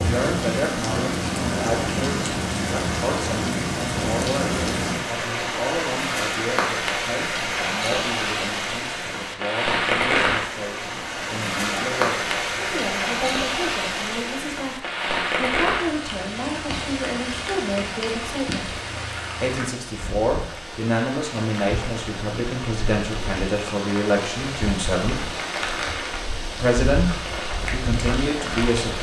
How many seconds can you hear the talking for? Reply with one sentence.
The talking can be heard for 26 seconds in total.